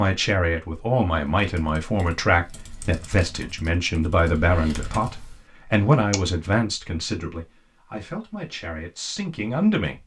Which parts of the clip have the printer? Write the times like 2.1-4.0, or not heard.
not heard.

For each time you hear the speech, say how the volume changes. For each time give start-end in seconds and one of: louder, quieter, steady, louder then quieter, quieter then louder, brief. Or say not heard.
0.0-10.0 quieter.